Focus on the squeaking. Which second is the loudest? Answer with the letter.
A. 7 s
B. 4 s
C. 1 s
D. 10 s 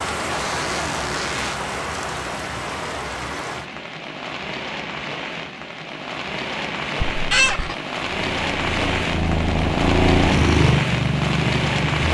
A.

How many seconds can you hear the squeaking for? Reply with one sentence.
You can hear the squeaking for 2 seconds altogether.